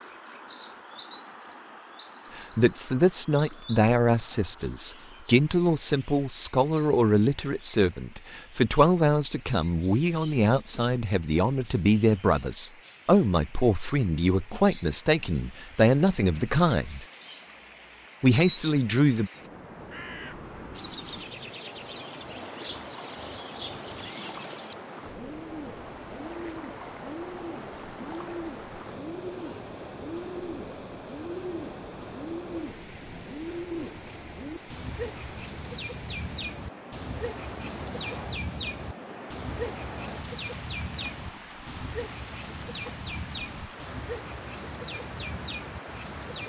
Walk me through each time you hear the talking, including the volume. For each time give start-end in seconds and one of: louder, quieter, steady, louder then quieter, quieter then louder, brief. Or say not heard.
2.4-17.1 steady
18.2-19.3 brief.